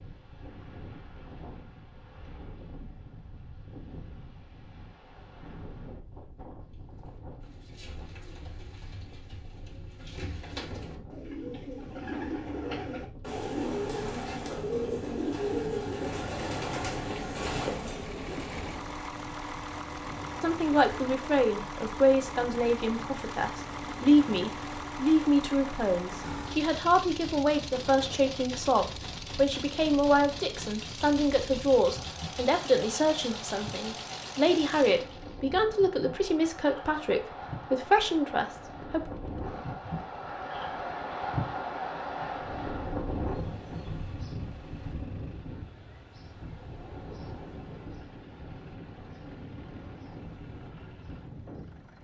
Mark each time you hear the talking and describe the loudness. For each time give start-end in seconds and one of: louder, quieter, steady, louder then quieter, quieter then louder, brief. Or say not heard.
20.4-39.0 steady.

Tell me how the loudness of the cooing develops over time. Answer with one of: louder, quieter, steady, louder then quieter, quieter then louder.
louder.